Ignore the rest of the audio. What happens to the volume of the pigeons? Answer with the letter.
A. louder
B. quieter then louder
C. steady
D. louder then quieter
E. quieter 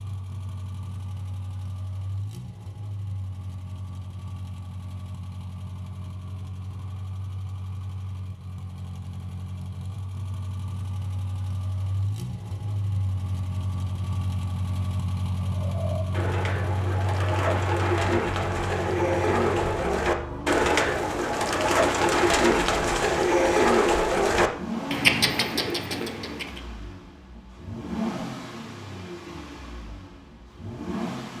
A.